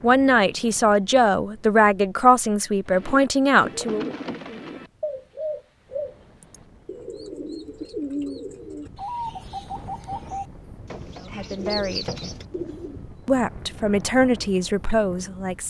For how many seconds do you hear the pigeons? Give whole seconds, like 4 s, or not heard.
10 s.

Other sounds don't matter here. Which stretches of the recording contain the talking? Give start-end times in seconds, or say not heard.
0.0-4.1, 11.2-12.1, 13.2-15.6.